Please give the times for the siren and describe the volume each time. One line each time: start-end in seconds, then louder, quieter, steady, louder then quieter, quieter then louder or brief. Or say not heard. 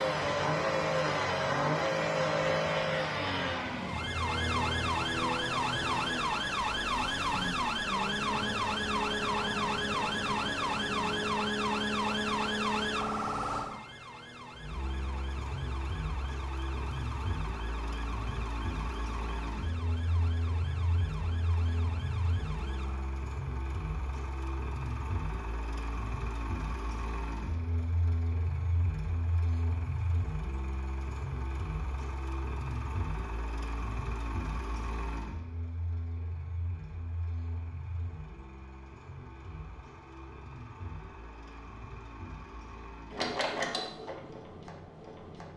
0.0-23.1 louder then quieter.